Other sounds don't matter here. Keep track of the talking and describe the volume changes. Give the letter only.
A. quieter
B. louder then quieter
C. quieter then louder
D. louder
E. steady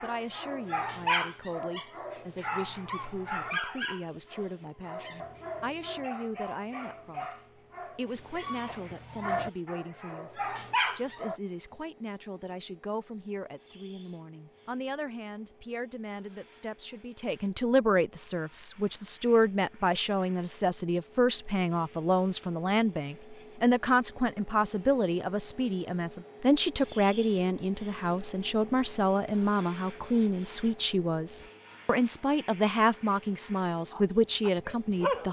D.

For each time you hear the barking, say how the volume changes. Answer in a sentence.
You can hear the barking from 0.0 to 11.3 s, getting quieter then louder; and briefly from 33.9 to 35.2 s.